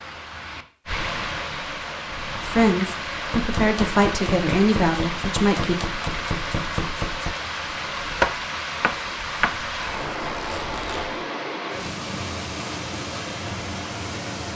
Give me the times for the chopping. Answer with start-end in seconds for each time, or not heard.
3.3-9.7.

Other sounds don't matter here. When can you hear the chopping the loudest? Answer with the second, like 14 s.
8 s.